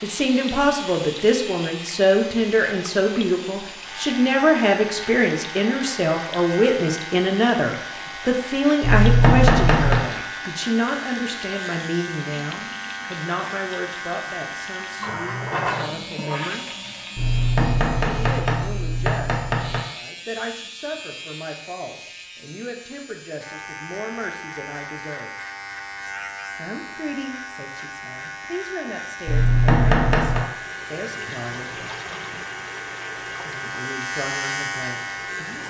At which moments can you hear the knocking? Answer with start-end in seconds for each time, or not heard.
8.8-10.1, 17.1-19.9, 29.2-30.4.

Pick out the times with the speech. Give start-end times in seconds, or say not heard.
0.0-16.6, 18.0-25.4, 26.6-31.9, 33.4-35.6.